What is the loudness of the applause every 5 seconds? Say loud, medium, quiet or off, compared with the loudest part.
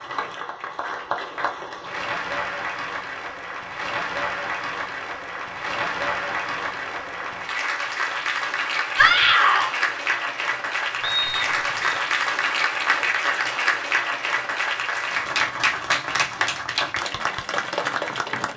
medium, loud, loud, loud.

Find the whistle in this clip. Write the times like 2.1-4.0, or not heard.
11.0-12.0.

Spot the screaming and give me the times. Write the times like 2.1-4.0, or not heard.
8.9-9.7.